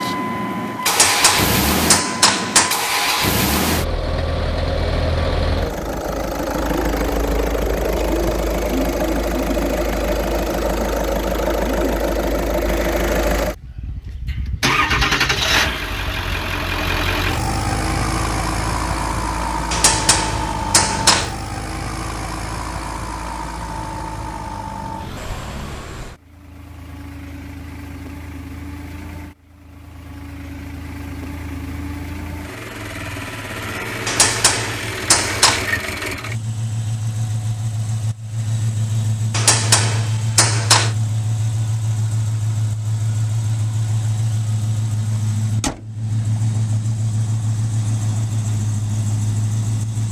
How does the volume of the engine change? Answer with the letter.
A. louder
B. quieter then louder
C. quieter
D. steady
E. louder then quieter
B.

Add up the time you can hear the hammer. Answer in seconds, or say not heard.
7 s.